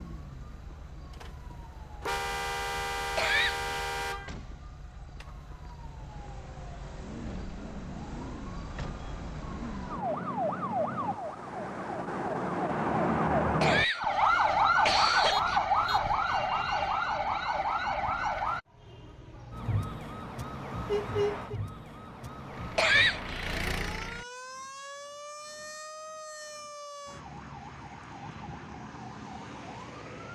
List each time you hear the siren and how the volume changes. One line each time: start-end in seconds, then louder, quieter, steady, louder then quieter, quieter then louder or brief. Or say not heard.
0.0-30.3 louder then quieter.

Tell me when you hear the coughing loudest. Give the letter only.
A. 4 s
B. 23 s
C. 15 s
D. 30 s
B.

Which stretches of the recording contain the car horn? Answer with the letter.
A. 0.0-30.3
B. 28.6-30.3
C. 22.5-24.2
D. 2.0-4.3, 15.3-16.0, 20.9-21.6
D.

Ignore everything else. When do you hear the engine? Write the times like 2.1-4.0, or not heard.
22.5-24.2.